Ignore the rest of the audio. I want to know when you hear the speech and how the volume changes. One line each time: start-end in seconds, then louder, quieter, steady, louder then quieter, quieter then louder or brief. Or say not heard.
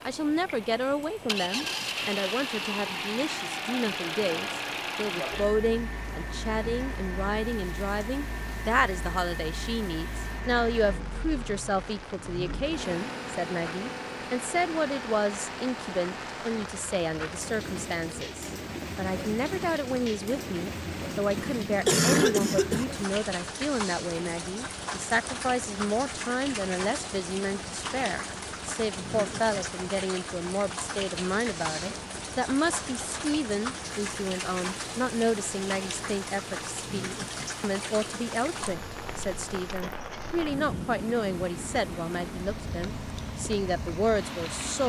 0.0-44.8 steady.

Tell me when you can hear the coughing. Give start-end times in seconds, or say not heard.
21.4-22.9.